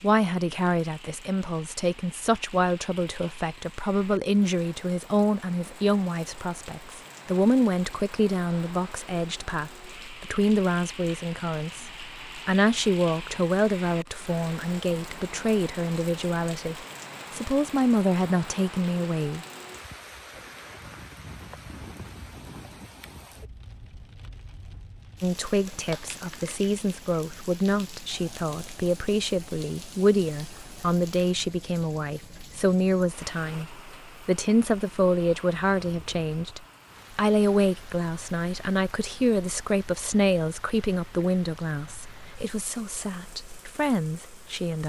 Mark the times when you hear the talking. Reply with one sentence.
You can hear the talking from 0.0 to 19.4 s and from 25.2 to 44.8 s.